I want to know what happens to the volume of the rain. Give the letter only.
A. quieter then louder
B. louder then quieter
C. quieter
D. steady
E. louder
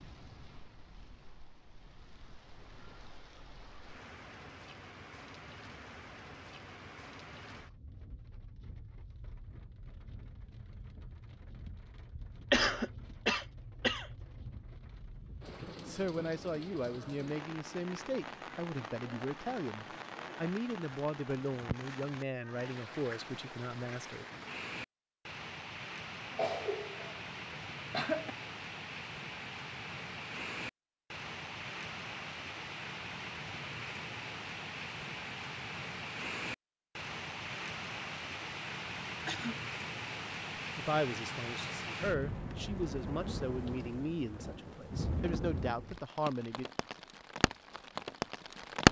E.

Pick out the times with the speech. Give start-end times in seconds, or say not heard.
15.8-24.2, 40.8-46.6.